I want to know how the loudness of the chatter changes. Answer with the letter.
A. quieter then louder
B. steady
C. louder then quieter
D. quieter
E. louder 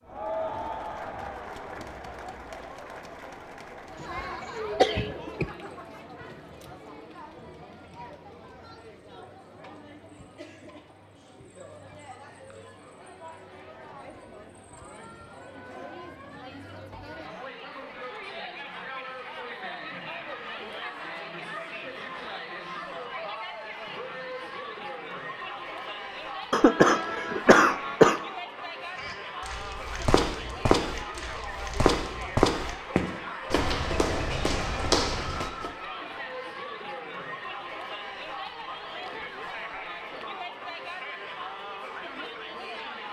A.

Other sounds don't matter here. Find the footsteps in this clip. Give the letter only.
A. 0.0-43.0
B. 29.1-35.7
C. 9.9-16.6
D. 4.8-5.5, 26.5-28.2
B.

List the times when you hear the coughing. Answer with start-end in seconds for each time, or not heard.
4.8-5.5, 26.5-28.2.